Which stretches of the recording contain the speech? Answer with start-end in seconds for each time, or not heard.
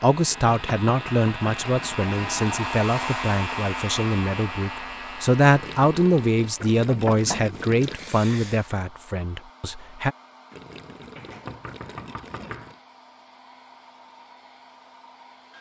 0.0-10.2.